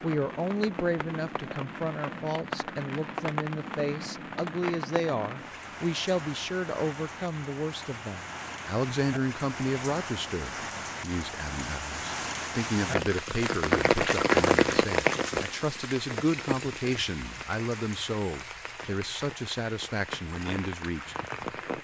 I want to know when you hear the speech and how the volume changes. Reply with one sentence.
You can hear the speech from 0.0 to 21.1 s, at a steady volume.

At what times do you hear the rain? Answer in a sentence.
The rain can be heard from 0.0 to 21.7 s.